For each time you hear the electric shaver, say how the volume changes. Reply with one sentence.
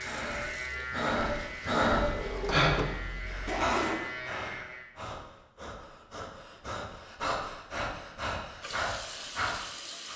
The electric shaver can be heard from 0.0 to 5.0 s, getting quieter then louder.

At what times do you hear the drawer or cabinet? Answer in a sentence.
The drawer or cabinet can be heard from 2.0 to 3.6 s.